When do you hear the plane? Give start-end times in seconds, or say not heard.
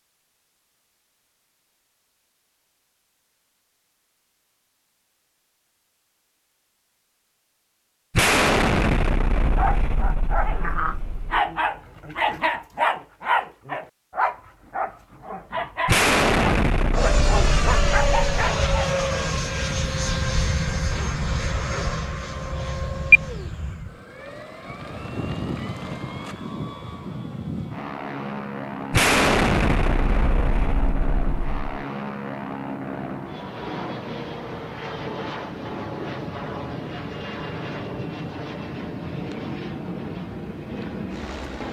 16.9-41.6.